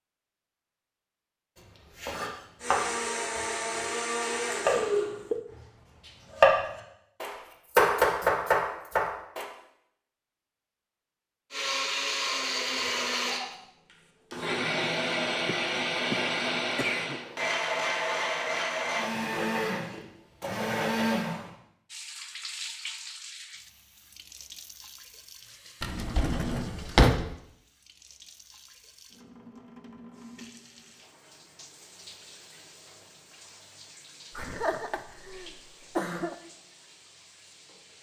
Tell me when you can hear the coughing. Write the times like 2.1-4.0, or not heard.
4.7-5.5, 15.4-17.2, 34.4-36.4.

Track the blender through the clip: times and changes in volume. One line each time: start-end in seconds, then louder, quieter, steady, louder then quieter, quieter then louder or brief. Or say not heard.
2.6-5.2 brief
11.5-21.5 steady.